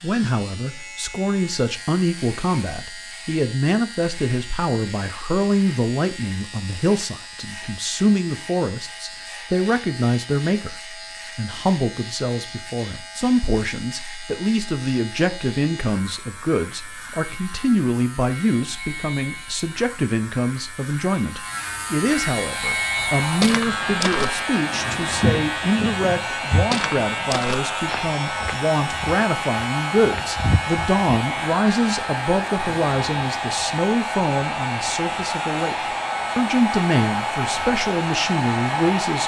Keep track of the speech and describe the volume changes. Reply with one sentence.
The volume of the speech stays about the same.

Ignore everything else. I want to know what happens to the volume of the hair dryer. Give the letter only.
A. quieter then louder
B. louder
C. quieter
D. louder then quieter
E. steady
B.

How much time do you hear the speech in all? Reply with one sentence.
You can hear the speech for 39 seconds altogether.